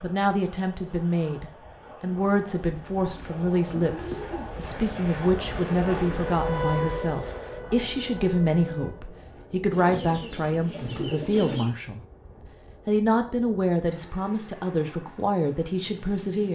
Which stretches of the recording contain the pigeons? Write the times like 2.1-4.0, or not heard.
3.1-4.5, 9.7-11.7.